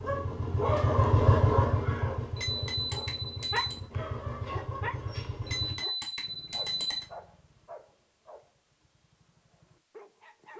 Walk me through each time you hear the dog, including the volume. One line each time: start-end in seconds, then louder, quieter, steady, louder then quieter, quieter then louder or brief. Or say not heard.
0.0-10.5 quieter.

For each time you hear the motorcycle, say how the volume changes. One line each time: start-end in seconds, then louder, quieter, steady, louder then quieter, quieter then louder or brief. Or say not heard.
0.0-5.8 quieter.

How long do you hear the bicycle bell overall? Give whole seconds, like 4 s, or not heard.
3 s.